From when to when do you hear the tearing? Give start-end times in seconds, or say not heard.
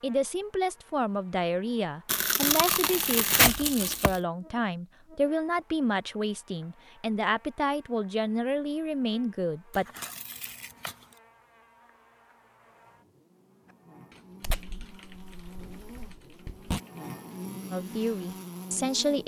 2.0-4.2, 9.7-11.2, 14.4-16.8.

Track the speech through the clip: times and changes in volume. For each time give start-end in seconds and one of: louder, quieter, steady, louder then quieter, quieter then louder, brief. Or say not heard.
0.0-9.8 steady
17.7-19.2 brief.